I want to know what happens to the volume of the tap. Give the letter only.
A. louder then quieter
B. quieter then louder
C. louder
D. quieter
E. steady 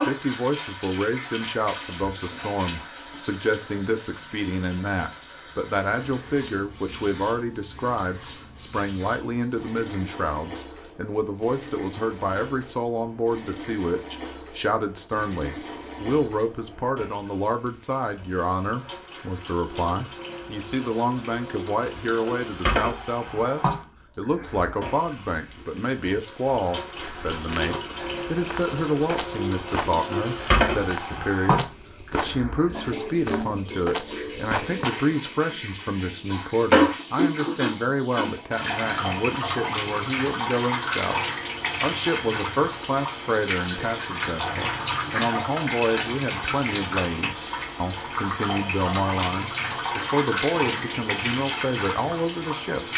C.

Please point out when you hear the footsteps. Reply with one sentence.
The footsteps can be heard from 26.9 to 35.2 s.